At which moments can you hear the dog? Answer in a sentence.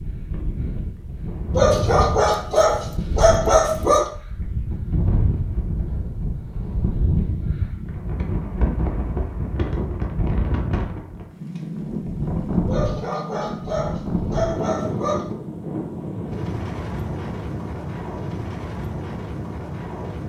You can hear the dog from 1.6 to 4.1 s and from 12.7 to 15.2 s.